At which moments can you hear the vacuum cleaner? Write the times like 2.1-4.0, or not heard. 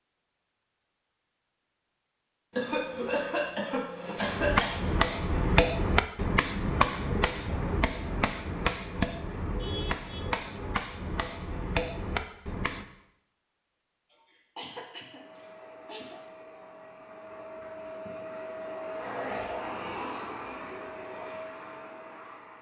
14.9-22.5.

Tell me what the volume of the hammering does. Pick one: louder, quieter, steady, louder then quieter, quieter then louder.
quieter.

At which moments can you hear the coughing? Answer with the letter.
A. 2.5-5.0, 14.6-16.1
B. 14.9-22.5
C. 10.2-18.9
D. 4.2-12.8
A.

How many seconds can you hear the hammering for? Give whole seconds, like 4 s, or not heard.
9 s.